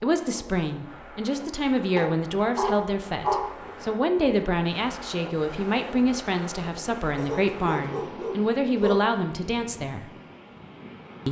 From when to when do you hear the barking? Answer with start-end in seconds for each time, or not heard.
1.9-3.5, 7.2-9.2.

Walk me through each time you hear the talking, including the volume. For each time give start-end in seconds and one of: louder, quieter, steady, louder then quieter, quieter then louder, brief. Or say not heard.
0.0-10.1 steady.